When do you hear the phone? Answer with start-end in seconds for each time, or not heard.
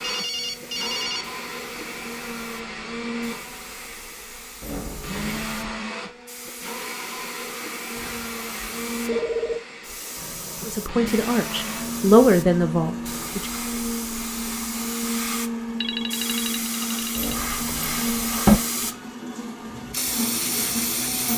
0.0-1.2, 8.0-9.6, 15.8-17.4.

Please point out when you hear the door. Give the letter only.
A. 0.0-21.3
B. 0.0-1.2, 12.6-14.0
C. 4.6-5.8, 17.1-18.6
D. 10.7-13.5
C.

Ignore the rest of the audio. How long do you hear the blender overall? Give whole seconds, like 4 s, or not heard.
21 s.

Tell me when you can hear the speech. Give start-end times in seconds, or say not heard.
10.7-13.5.